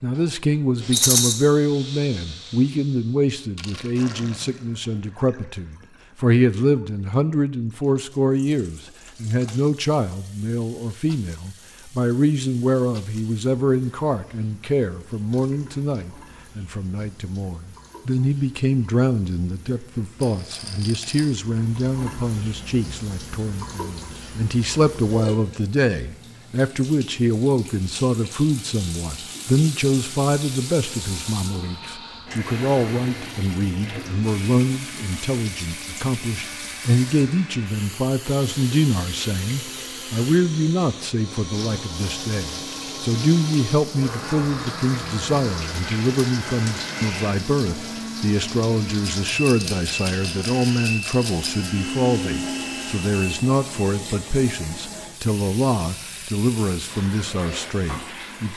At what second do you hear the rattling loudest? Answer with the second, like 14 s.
1 s.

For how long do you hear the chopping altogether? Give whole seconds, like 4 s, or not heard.
not heard.